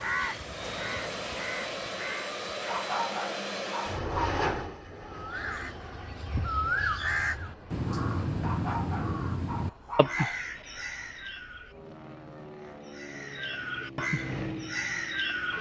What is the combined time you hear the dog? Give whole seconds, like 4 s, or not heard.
4 s.